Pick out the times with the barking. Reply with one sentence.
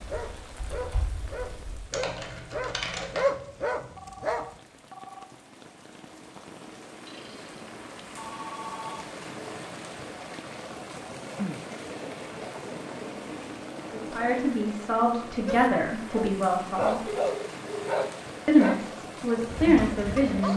You can hear the barking from 0.0 to 4.6 s and from 15.4 to 20.5 s.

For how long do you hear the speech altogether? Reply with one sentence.
You can hear the speech for 5 seconds altogether.